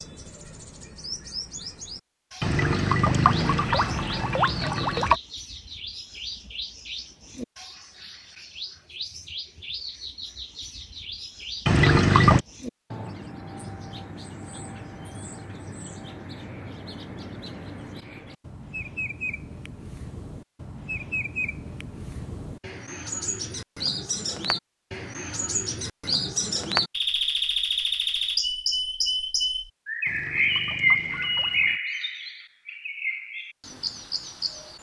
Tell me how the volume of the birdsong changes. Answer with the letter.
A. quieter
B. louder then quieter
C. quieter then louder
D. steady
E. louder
E.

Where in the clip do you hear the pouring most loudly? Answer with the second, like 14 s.
12 s.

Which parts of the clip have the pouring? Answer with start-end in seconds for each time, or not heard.
2.4-5.2, 11.7-12.4, 30.1-31.8.